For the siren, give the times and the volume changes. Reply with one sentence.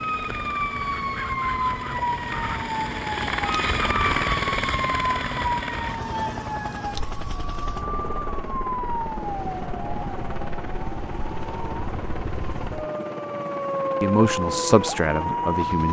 You can hear the siren from 0.0 to 15.8 s, getting quieter then louder.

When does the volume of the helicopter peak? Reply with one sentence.
The loudest moment of the helicopter is at 4 seconds.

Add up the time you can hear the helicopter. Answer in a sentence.
The helicopter can be heard for 16 seconds in total.